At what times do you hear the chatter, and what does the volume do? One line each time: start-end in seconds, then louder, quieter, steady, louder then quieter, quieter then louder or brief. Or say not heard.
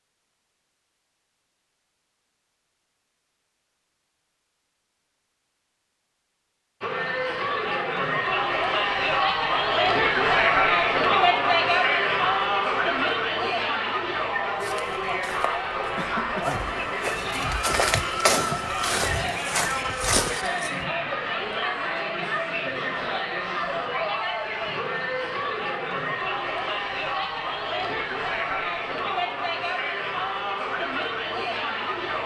6.8-32.2 quieter.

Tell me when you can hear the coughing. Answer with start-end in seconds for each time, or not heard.
15.9-16.8.